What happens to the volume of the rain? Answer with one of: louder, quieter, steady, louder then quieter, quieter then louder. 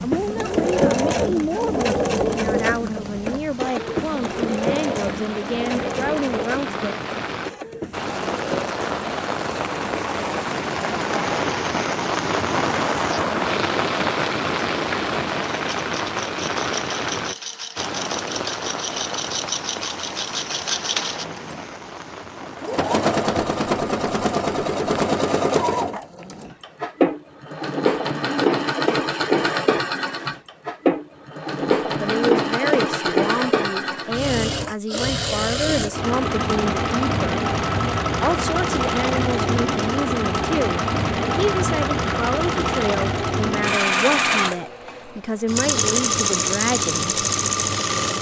louder then quieter.